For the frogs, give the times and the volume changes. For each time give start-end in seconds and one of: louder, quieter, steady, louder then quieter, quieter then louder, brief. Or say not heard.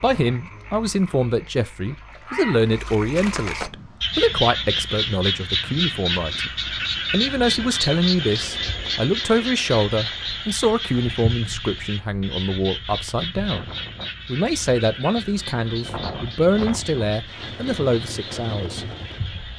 0.0-19.5 louder then quieter.